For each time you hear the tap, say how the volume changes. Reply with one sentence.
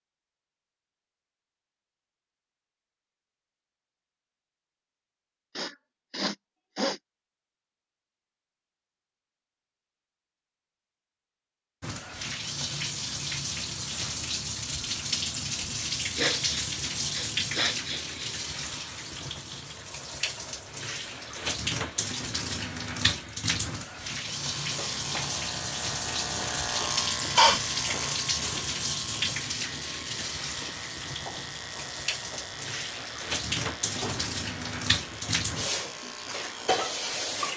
The tap can be heard from 11.8 to 37.5 s, at a steady volume.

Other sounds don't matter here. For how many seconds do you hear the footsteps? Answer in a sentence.
You can't hear the footsteps here.